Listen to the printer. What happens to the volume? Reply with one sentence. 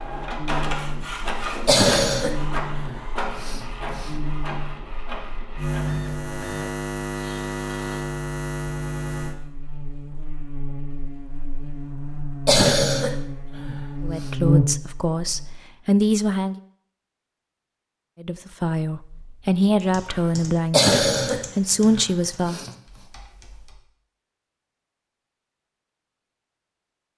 The loudness of the printer goes down.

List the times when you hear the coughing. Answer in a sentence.
You can hear the coughing from 1.6 to 4.1 s, from 12.4 to 14.3 s and from 20.7 to 22.7 s.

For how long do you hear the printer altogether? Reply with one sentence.
The printer can be heard for 8 seconds in total.